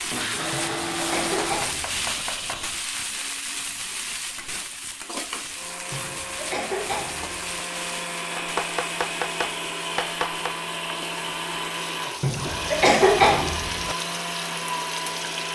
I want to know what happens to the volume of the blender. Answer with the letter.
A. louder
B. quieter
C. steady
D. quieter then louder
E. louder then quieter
D.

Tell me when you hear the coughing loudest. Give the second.
13 s.